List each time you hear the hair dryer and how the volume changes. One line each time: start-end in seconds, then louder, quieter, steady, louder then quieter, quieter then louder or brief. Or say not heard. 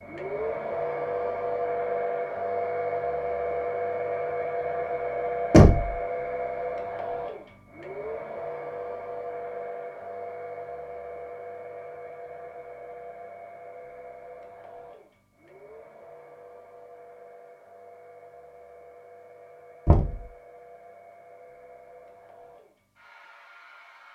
0.0-24.1 quieter.